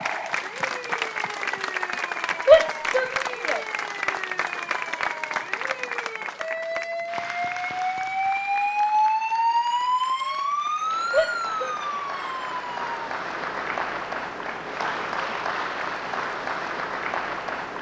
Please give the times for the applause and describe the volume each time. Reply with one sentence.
You can hear the applause from 0.0 to 17.7 s, getting quieter then louder.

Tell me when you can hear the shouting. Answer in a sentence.
You can hear the shouting from 2.5 to 3.6 s and from 11.1 to 11.8 s.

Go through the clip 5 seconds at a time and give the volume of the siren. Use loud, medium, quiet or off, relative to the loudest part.
medium, loud, loud, off.